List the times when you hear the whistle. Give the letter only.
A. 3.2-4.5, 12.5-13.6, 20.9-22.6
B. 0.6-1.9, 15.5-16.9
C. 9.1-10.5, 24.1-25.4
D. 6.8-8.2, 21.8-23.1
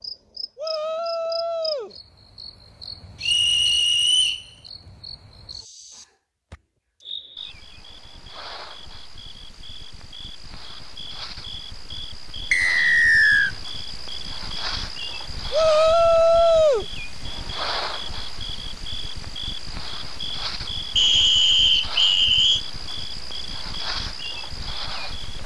A.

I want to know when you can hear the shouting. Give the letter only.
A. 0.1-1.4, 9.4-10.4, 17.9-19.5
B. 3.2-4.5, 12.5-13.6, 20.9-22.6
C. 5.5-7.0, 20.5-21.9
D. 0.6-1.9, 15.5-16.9
D.